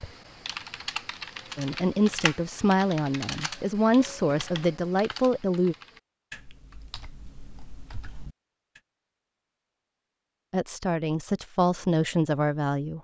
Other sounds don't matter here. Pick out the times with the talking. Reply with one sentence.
The talking can be heard from 1.6 to 5.8 s and from 10.5 to 12.9 s.